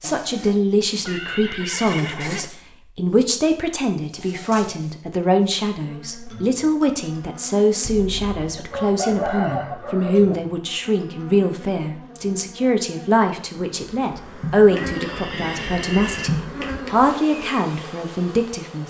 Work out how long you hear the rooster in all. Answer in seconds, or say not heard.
2 s.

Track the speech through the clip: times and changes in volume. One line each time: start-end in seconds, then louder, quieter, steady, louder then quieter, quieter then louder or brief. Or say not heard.
0.0-18.8 steady.